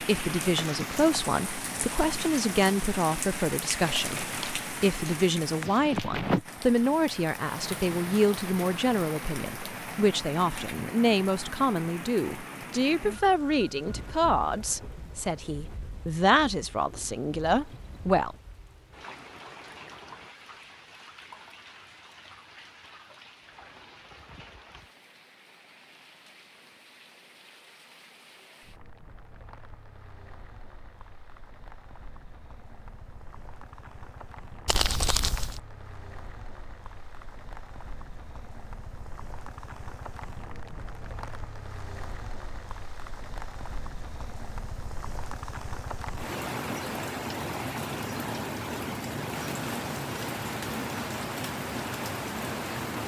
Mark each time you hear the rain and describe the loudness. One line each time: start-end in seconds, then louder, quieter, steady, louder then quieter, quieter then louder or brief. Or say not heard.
0.0-53.0 quieter then louder.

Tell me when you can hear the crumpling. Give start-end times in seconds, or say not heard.
3.8-4.7, 34.6-35.6.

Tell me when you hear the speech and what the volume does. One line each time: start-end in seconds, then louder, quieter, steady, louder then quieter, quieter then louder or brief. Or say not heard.
0.0-18.4 steady.